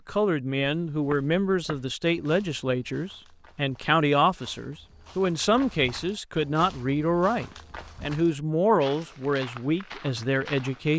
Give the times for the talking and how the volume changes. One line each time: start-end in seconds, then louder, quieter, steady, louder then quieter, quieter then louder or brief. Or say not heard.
0.1-10.9 steady.